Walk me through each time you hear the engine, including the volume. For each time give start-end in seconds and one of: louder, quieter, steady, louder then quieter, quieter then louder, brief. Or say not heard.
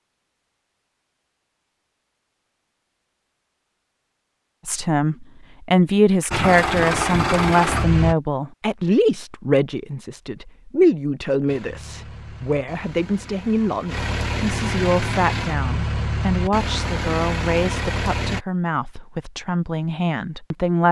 6.3-8.2 brief
11.4-18.4 louder.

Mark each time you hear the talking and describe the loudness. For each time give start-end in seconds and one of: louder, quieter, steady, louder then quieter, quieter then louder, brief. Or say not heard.
4.7-20.8 quieter.